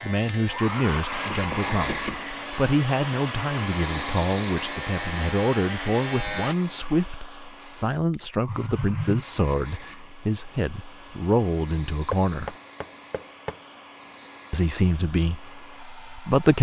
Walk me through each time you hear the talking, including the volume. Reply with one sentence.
The talking can be heard from 0.0 to 12.6 s, at a steady volume; and briefly from 14.5 to 16.5 s.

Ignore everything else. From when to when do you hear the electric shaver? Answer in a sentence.
You can hear the electric shaver from 0.0 to 6.5 s.